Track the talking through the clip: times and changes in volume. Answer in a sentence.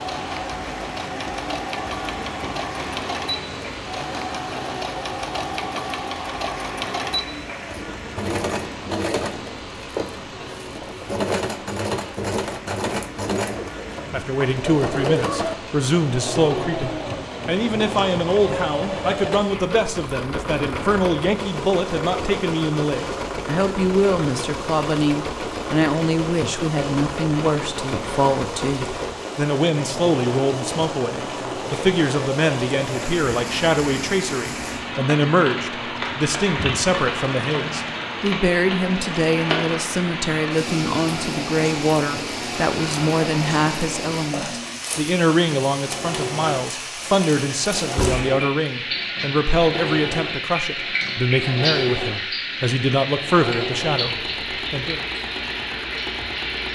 You can hear the talking from 14.1 to 55.0 s, at a steady volume.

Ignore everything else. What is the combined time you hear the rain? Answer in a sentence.
You can hear the rain for 57 seconds altogether.